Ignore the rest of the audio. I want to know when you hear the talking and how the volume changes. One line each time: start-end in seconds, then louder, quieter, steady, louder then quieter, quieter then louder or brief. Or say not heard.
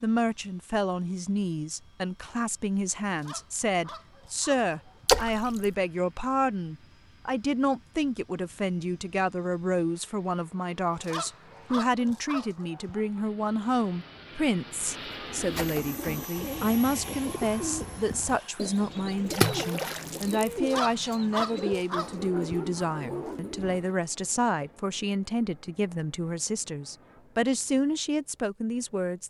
0.0-29.2 steady.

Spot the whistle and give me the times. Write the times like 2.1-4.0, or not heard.
not heard.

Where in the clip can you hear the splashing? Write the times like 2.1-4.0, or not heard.
5.0-5.7, 19.3-20.5.